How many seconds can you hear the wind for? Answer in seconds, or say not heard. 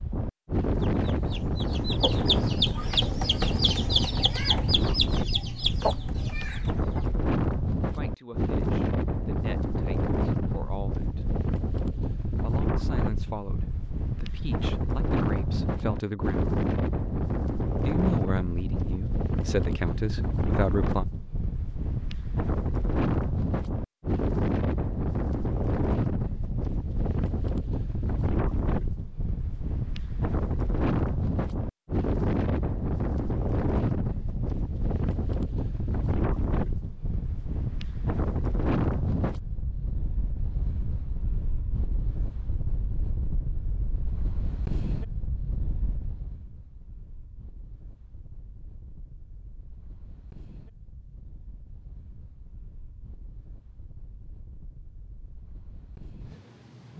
57 s.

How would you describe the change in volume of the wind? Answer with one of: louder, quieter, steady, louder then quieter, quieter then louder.
quieter.